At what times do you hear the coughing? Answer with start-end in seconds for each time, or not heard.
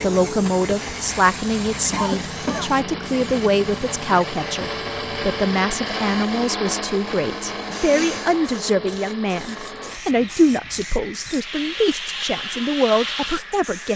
1.9-2.7, 7.7-8.4.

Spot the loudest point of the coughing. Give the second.
2 s.